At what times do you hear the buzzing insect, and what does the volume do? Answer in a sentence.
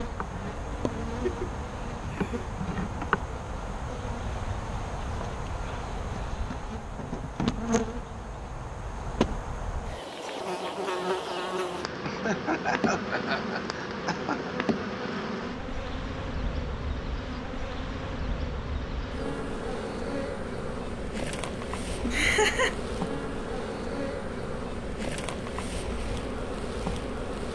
You can hear the buzzing insect from 0.0 to 27.5 s, at a steady volume.